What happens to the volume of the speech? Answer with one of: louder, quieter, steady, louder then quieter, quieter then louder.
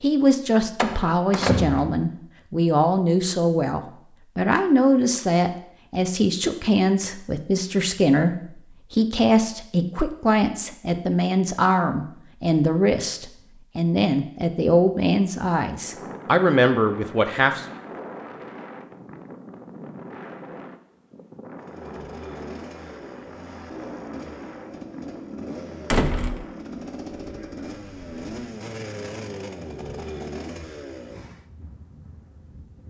steady.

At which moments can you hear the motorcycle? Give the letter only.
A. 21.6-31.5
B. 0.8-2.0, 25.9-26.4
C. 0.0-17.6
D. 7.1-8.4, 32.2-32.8
A.